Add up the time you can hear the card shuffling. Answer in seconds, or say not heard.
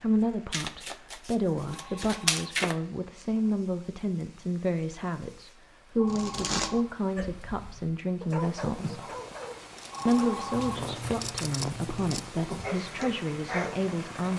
5 s.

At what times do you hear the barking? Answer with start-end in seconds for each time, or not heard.
7.2-13.8.